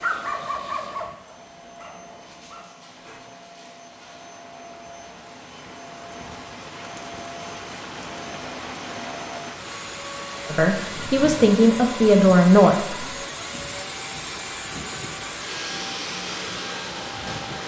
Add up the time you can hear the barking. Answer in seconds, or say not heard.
3 s.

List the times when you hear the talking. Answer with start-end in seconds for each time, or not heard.
10.4-12.9.